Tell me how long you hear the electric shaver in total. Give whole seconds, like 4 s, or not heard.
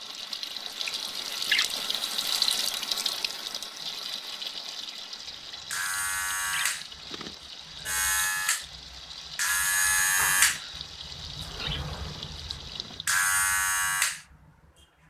9 s.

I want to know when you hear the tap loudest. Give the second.
2 s.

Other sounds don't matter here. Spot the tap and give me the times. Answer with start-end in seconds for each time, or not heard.
0.0-13.2.